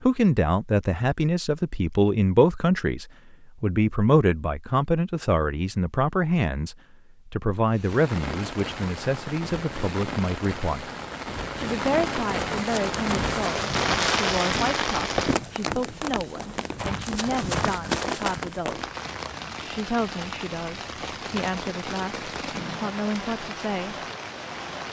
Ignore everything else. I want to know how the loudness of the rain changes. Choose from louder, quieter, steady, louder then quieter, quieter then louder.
louder then quieter.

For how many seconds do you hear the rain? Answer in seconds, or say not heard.
17 s.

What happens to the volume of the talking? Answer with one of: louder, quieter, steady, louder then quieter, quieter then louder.
quieter.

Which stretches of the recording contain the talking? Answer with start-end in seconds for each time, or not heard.
0.0-10.9, 11.6-18.9, 19.6-23.9.